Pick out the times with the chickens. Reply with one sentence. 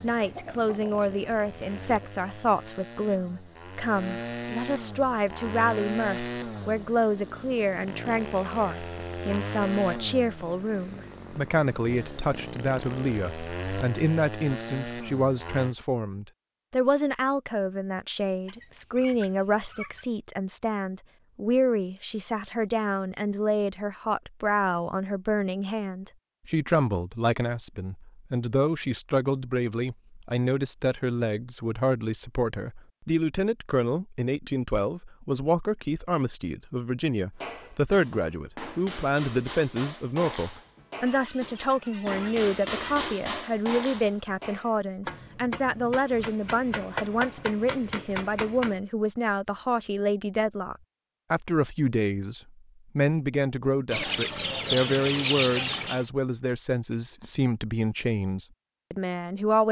You can hear the chickens from 0.1 to 2.1 s, from 18.4 to 20.1 s, from 41.0 to 43.0 s and from 53.9 to 56.1 s.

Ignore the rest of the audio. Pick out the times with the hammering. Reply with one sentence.
The hammering can be heard from 37.4 to 48.8 s.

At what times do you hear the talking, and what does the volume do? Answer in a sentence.
You can hear the talking from 0.0 to 59.6 s, at a steady volume.